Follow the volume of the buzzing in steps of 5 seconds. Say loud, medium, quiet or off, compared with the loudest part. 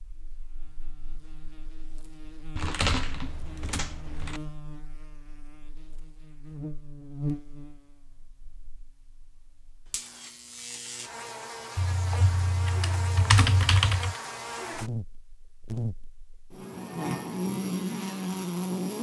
quiet, medium, medium, loud.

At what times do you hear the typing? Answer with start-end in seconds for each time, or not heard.
2.5-4.4, 11.8-14.2.